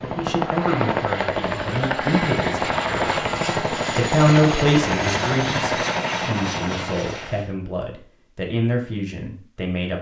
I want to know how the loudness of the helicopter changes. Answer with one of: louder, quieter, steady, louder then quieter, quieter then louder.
steady.